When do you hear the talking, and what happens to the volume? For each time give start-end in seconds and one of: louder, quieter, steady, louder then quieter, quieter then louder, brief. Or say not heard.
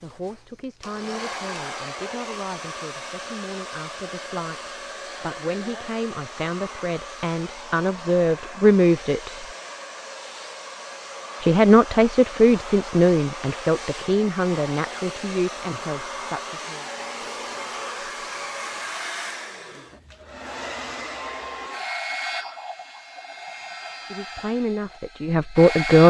0.0-9.4 louder
11.4-16.9 quieter
24.1-26.0 brief.